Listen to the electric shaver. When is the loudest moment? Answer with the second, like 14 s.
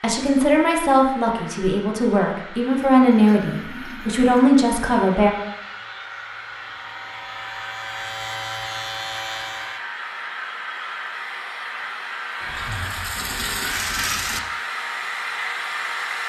9 s.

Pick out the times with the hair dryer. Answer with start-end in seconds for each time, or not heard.
0.1-16.2.